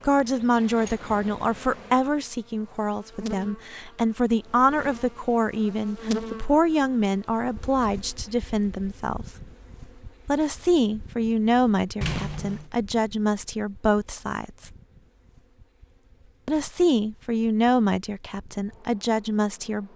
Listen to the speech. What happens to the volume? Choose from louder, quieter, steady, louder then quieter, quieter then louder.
steady.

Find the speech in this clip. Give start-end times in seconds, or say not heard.
0.0-9.3, 10.2-14.7, 16.4-19.9.